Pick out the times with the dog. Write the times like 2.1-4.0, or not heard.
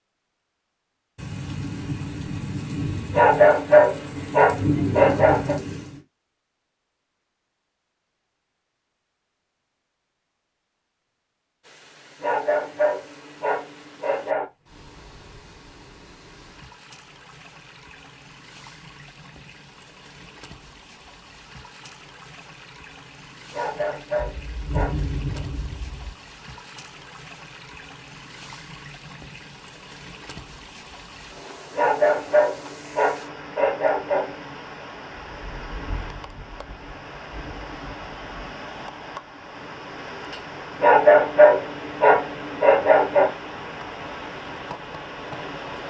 3.1-5.5, 12.2-14.4, 23.5-25.4, 31.8-34.3, 40.8-43.3.